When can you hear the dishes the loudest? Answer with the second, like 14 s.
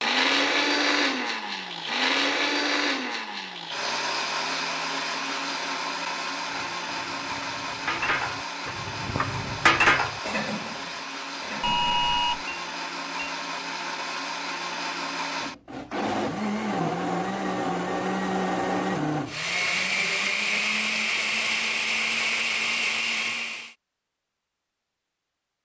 10 s.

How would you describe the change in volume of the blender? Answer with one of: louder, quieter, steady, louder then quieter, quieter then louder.
quieter then louder.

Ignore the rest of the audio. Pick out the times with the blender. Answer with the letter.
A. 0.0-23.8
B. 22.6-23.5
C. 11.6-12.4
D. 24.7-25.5
A.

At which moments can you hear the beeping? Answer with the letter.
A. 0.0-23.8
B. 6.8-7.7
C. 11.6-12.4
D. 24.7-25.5
C.